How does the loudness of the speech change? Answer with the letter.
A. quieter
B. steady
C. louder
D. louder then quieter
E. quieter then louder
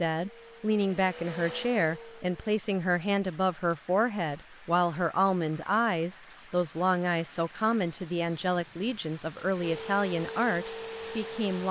B.